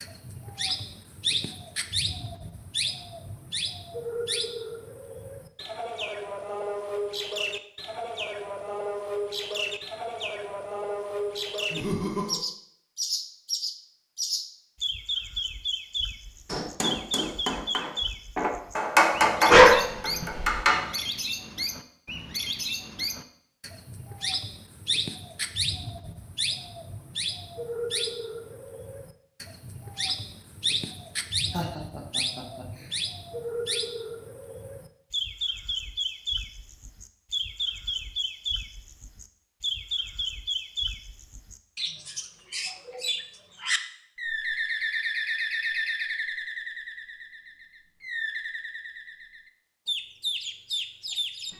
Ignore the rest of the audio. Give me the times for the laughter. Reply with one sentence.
The laughter can be heard from 11.7 to 12.4 s and from 31.5 to 33.0 s.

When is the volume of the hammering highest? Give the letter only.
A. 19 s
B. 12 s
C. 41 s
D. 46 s
A.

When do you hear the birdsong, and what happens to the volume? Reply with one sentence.
The birdsong can be heard from 0.0 to 51.5 s, at a steady volume.